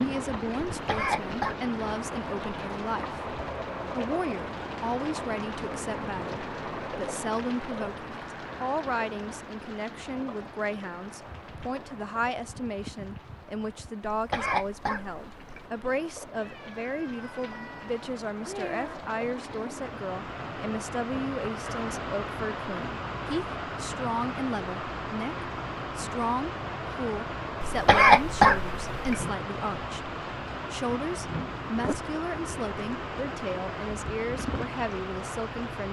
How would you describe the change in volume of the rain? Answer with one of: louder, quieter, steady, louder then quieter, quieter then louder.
quieter then louder.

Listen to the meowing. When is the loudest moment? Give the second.
19 s.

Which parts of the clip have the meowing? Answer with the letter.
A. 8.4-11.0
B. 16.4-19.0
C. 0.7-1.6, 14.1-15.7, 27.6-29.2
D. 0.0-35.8
B.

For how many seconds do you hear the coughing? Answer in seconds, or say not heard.
4 s.